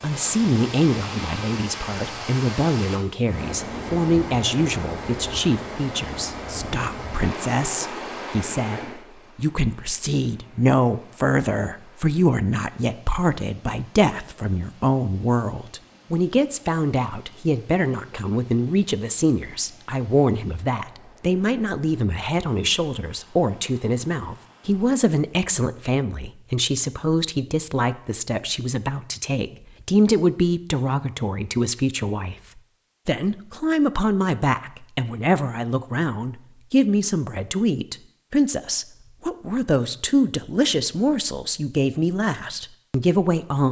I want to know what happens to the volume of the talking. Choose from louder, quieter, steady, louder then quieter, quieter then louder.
steady.